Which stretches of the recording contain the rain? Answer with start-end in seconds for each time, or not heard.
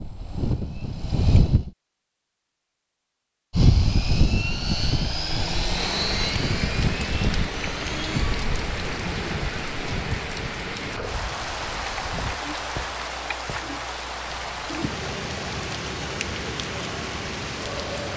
5.7-18.1.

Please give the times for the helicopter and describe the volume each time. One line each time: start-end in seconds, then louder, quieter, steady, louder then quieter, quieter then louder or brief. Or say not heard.
0.0-1.8 brief
3.5-12.4 quieter.